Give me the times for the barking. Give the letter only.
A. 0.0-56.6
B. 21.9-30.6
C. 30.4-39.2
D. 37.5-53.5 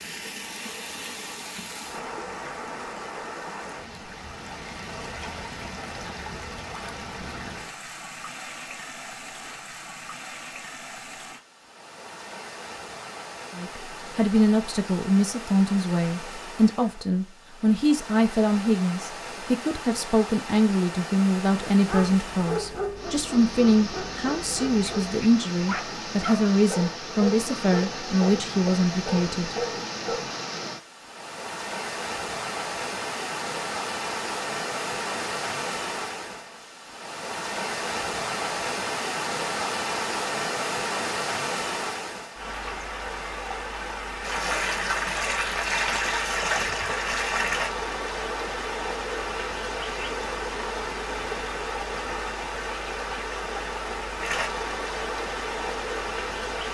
B.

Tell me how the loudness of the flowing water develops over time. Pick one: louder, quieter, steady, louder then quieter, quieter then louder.
louder.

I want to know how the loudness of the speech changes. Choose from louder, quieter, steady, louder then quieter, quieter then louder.
steady.